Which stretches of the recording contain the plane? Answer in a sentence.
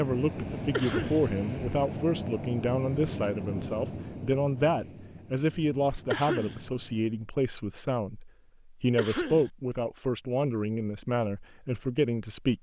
You can hear the plane from 0.0 to 7.1 s.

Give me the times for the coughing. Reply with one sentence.
The coughing can be heard from 0.7 to 1.2 s, from 6.1 to 6.6 s and from 8.9 to 9.5 s.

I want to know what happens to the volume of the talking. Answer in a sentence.
The volume of the talking stays about the same.